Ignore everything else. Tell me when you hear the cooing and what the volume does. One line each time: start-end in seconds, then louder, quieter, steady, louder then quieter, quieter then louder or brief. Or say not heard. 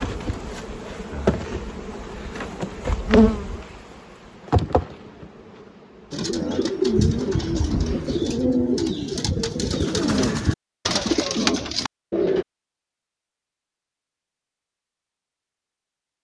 6.1-12.4 steady.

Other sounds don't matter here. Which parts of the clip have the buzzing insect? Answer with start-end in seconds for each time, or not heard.
0.0-8.2.